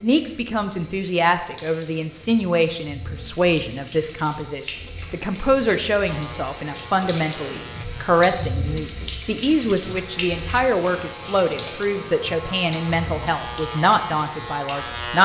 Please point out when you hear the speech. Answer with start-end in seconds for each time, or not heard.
0.0-15.1.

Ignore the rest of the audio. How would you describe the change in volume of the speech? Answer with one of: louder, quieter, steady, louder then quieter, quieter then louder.
steady.